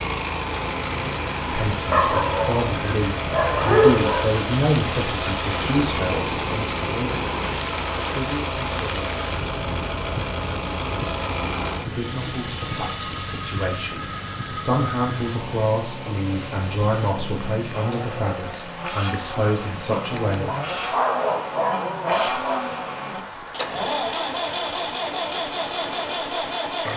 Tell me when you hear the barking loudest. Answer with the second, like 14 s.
4 s.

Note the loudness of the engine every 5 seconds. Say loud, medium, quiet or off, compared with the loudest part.
loud, loud, loud, medium, loud, loud.